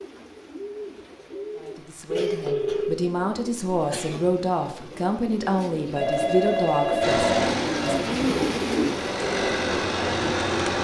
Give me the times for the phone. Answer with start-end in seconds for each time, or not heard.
2.1-3.0, 6.0-8.0.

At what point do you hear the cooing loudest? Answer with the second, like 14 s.
8 s.